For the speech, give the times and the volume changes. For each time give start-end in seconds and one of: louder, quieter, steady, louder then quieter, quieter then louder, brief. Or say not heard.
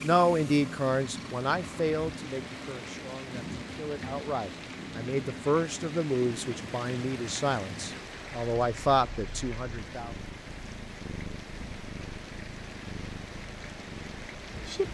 0.0-10.2 quieter then louder.